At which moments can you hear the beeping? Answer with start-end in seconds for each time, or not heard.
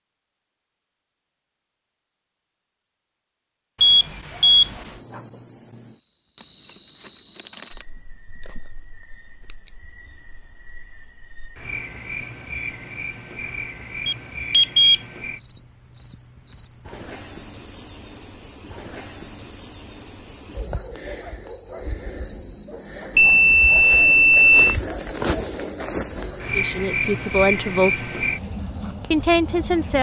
3.8-4.8, 14.1-15.0, 23.1-24.8.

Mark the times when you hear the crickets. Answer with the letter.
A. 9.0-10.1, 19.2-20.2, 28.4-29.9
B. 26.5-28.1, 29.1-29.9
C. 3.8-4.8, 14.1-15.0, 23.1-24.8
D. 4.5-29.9
D.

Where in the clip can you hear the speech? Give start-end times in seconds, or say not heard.
26.5-28.1, 29.1-29.9.